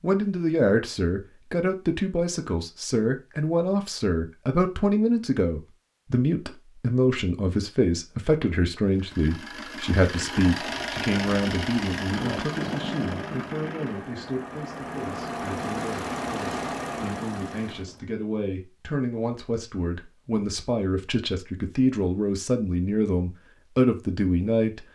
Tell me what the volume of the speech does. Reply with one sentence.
The volume of the speech goes down, then up.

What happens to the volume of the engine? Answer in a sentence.
The volume of the engine stays about the same.